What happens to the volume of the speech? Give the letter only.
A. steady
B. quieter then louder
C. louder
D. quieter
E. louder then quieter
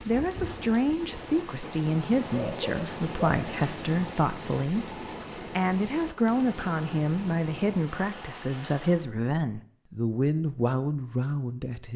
A.